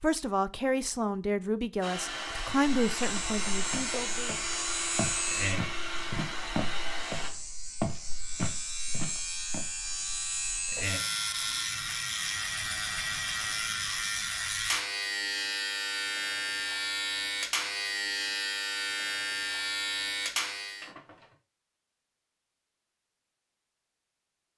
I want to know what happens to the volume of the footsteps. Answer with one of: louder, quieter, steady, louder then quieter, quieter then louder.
louder.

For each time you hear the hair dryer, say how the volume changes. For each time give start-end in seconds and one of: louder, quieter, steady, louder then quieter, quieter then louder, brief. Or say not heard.
1.8-7.3 steady.